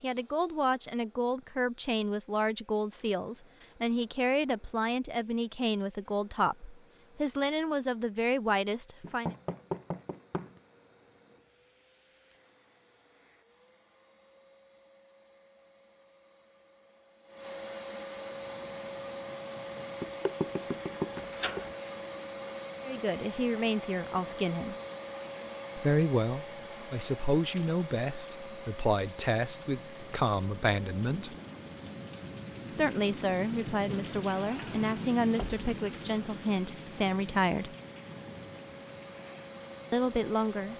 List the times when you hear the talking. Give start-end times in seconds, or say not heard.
0.0-9.3, 22.9-24.8, 25.8-31.4, 32.7-37.8, 39.9-40.7.